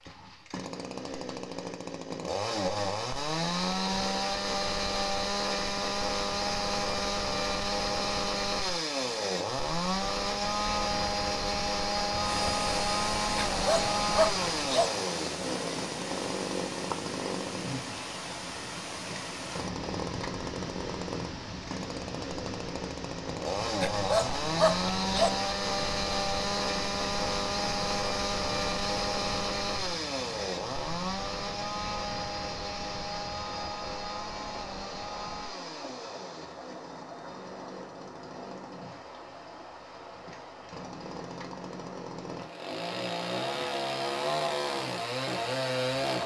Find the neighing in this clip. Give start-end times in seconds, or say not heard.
not heard.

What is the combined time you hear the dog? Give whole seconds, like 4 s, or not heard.
3 s.